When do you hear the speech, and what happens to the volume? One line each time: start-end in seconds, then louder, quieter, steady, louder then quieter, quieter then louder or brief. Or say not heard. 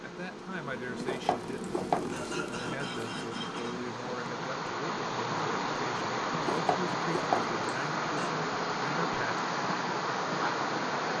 0.0-9.3 steady.